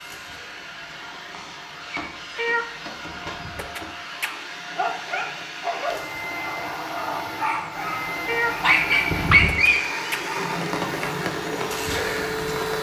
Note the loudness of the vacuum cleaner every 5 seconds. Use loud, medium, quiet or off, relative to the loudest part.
medium, loud, loud.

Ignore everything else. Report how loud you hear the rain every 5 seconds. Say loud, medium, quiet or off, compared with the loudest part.
quiet, medium, loud.